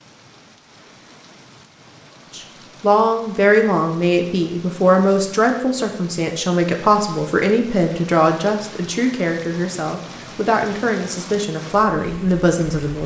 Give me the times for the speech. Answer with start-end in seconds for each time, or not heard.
2.3-13.0.